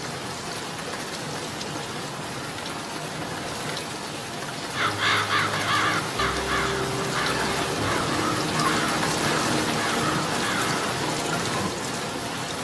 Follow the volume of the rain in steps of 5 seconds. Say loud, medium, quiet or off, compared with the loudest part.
medium, loud, loud.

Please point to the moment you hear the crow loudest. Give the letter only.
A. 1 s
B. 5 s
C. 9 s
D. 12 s
B.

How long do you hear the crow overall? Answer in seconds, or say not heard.
6 s.